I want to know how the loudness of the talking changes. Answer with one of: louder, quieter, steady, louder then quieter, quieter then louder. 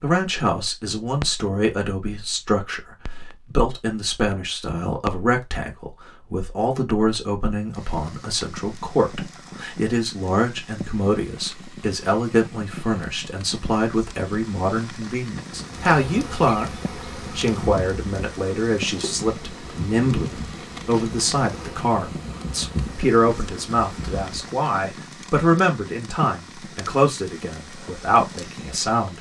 steady.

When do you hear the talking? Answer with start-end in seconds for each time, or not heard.
0.0-29.1.